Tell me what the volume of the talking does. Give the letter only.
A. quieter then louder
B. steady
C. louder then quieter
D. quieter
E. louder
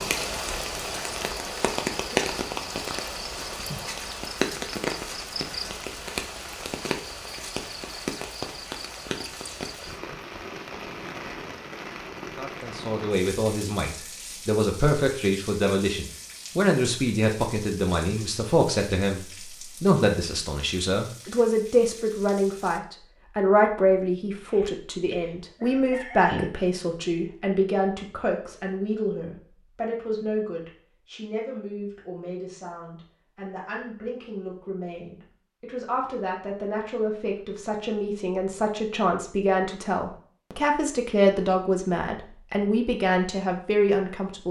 A.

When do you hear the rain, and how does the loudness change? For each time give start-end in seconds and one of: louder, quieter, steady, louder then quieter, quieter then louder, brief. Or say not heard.
0.0-22.8 quieter.